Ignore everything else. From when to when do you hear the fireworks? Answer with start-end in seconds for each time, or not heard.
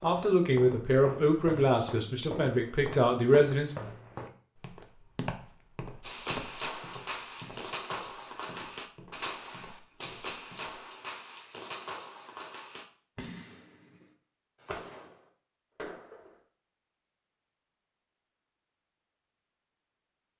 6.0-16.4.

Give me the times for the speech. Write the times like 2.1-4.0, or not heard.
0.0-3.8.